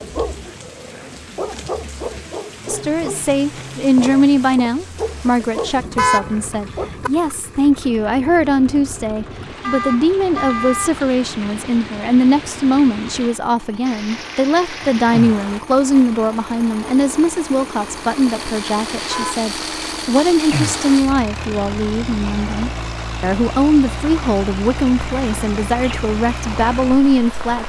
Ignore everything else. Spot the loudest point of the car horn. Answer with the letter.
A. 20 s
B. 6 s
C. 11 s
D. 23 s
B.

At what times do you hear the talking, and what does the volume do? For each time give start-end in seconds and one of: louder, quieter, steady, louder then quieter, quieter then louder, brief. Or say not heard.
2.6-27.6 steady.